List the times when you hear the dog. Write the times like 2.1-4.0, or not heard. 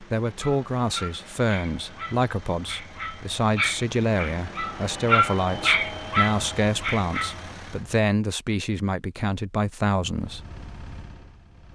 0.2-7.5.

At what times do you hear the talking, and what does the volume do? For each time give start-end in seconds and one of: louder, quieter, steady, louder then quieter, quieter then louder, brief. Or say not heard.
0.0-10.4 steady.